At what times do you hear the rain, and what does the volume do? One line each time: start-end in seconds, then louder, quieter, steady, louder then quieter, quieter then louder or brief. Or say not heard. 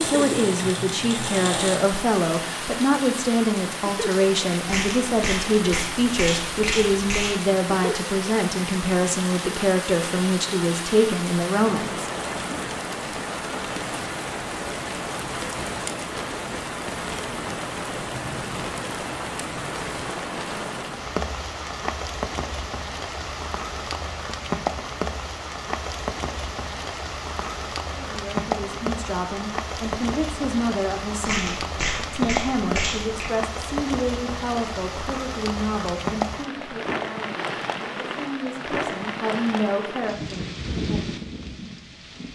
0.0-42.2 steady.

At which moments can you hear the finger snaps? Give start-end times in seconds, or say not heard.
4.7-7.4, 31.2-33.3.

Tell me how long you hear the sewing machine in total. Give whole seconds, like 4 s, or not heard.
2 s.